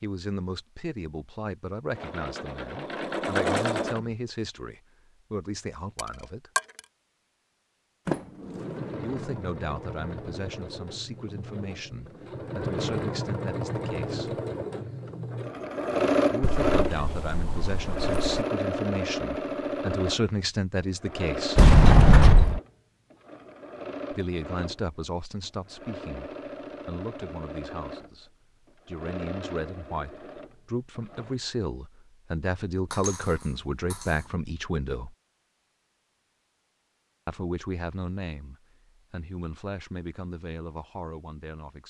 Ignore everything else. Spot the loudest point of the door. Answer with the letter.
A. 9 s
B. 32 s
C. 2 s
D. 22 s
D.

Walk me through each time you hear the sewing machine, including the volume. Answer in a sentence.
You can hear the sewing machine briefly from 1.9 to 4.2 s; and from 8.5 to 31.4 s, getting louder then quieter.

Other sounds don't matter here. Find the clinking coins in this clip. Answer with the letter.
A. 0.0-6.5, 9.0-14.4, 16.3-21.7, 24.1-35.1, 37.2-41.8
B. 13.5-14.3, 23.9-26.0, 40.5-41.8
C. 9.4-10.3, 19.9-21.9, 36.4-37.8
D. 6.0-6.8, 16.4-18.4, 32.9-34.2
D.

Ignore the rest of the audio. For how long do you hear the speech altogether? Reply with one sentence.
You can hear the speech for 33 seconds altogether.